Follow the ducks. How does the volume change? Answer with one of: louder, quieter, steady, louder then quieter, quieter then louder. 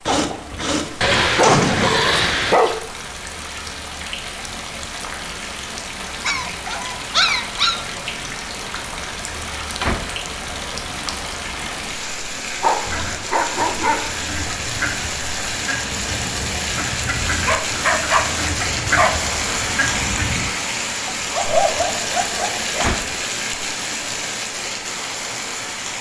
louder.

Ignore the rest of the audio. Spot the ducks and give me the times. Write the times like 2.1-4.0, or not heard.
12.8-20.5.